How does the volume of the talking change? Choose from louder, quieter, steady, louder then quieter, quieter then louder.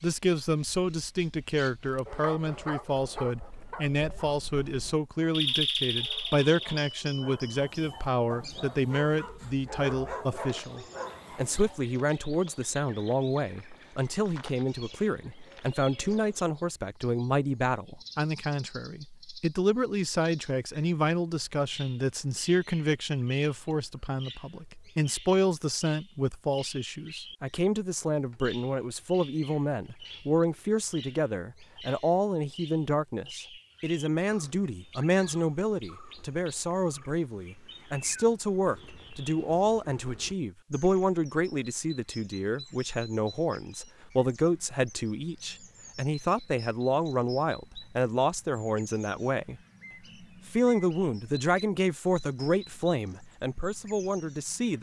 steady.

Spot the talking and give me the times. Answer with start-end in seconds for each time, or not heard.
0.0-49.6, 50.5-54.7.